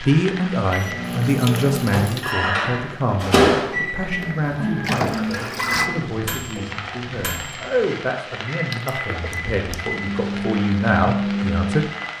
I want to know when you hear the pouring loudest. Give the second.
5 s.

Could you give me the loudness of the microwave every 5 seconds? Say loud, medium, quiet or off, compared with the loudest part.
loud, medium, loud.